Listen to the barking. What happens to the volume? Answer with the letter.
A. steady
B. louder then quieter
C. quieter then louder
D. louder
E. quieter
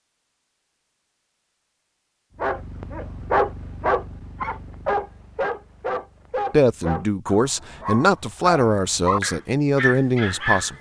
C.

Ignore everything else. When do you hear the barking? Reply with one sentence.
The barking can be heard from 2.4 to 10.7 s.